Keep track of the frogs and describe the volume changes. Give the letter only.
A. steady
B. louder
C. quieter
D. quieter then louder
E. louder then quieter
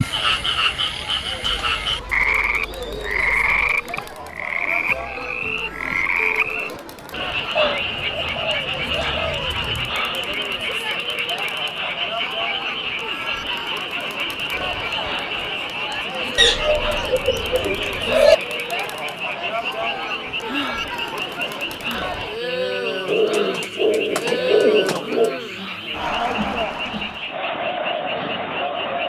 C.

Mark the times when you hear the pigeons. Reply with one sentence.
You can hear the pigeons from 1.4 to 3.6 s, from 7.5 to 10.0 s, from 16.4 to 18.4 s and from 23.1 to 25.4 s.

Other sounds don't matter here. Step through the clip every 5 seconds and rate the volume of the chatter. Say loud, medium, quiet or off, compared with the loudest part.
medium, medium, medium, loud, loud, loud.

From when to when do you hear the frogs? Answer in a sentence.
The frogs can be heard from 0.0 to 29.0 s.